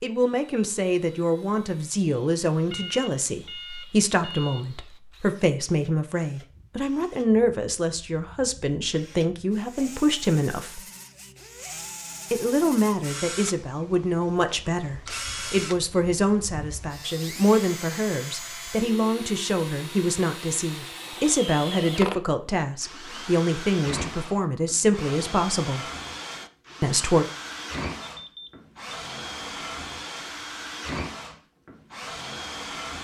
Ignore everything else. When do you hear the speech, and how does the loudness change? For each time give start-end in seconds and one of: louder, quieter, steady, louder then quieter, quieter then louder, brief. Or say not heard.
0.0-10.8 steady
12.3-25.9 steady
26.8-27.2 brief.